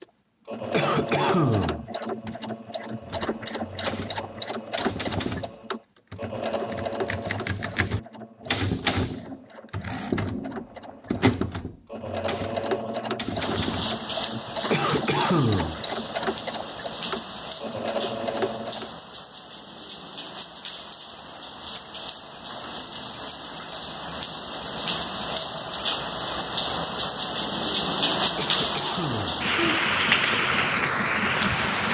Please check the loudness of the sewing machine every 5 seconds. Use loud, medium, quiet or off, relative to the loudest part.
loud, loud, loud, loud, off, off, off.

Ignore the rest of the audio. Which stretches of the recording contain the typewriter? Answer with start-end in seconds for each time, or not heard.
3.0-14.0.